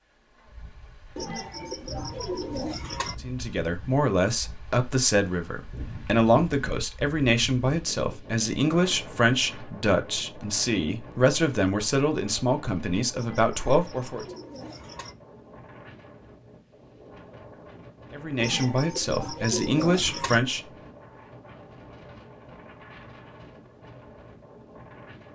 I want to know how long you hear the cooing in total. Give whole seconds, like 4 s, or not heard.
6 s.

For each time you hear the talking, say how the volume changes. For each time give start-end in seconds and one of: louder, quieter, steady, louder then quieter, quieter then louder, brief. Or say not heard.
3.2-14.2 steady
18.1-20.6 brief.